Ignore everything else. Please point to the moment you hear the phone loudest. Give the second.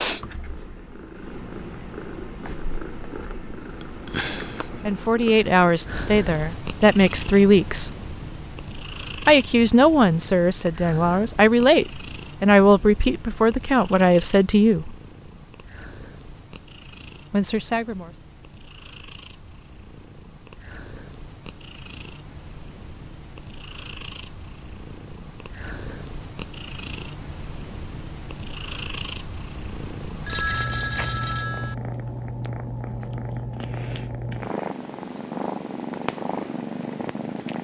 31 s.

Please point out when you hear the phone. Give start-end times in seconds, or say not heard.
30.2-31.8.